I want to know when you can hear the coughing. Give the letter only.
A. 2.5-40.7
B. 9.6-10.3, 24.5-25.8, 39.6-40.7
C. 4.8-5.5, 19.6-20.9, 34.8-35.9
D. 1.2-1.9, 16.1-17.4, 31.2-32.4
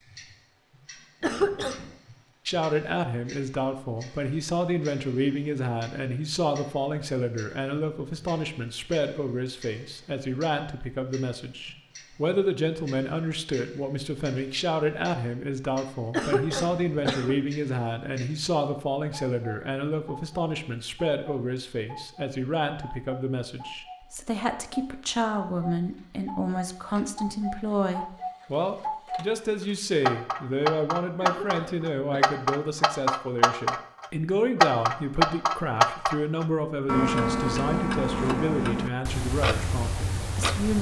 D.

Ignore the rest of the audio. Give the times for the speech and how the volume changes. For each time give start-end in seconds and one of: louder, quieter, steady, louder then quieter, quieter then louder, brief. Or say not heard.
2.5-40.7 steady.